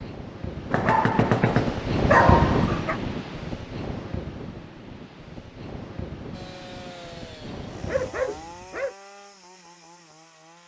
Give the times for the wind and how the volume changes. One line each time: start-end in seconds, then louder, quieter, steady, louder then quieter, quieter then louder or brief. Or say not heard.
0.0-8.1 louder then quieter.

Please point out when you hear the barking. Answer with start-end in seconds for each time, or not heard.
0.7-3.0, 7.7-8.9.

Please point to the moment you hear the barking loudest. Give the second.
2 s.